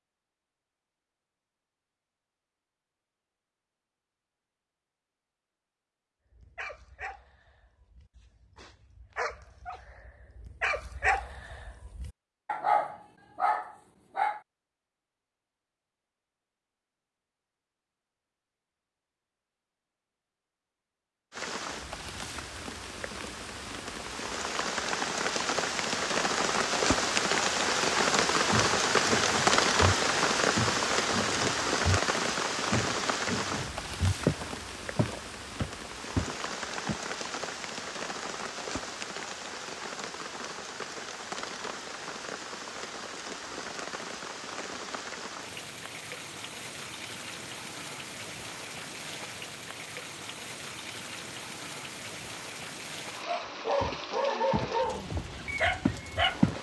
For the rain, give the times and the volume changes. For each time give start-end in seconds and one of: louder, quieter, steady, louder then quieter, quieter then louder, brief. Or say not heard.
21.3-56.5 quieter.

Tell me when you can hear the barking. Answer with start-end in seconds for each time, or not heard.
6.3-14.4, 53.2-56.5.